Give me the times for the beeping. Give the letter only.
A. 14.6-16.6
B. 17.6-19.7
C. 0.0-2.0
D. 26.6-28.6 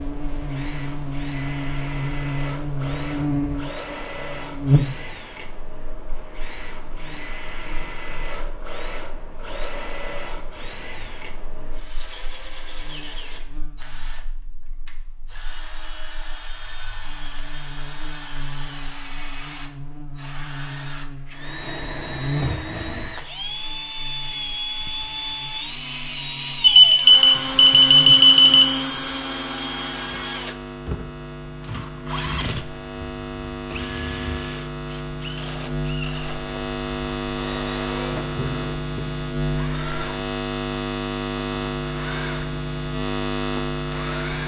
D.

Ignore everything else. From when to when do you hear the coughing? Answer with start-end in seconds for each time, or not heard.
not heard.